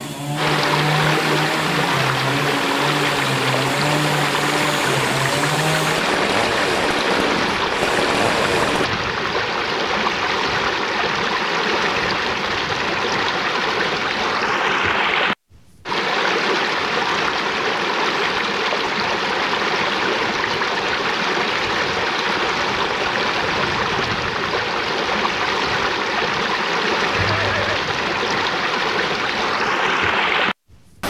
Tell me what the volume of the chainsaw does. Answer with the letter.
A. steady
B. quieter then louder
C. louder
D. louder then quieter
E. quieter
A.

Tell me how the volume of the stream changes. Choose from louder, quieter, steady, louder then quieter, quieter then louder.
steady.